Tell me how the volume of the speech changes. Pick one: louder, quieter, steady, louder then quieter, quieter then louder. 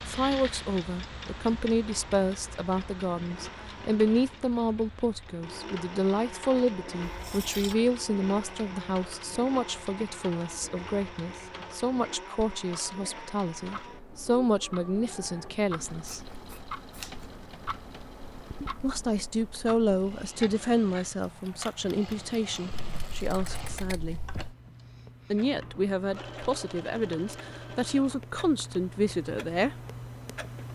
steady.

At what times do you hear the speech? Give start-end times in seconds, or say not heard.
0.1-16.2, 18.8-24.2, 25.3-29.8.